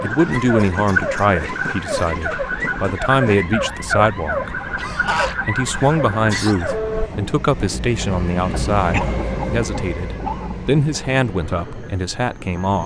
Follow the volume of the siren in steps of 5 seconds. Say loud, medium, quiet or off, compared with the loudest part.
loud, loud, off.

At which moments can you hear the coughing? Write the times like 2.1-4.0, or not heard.
0.3-1.9, 4.8-6.8, 8.9-10.6.